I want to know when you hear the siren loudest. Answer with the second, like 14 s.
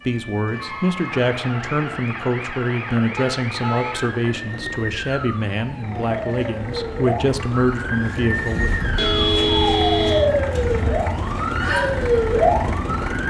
12 s.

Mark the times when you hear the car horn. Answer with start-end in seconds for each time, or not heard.
3.1-4.2, 8.9-10.3.